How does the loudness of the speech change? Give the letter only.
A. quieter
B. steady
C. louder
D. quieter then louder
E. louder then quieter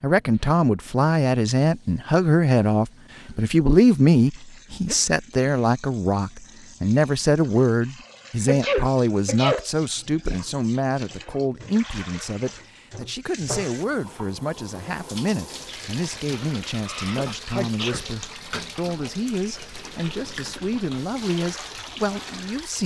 A.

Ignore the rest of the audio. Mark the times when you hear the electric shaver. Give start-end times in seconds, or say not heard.
not heard.